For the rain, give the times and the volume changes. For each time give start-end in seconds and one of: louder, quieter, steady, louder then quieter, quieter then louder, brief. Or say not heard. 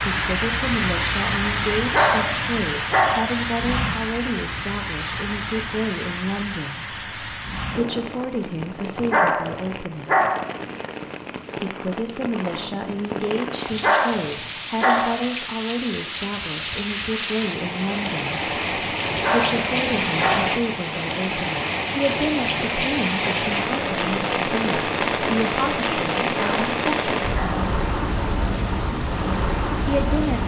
0.0-30.4 quieter then louder.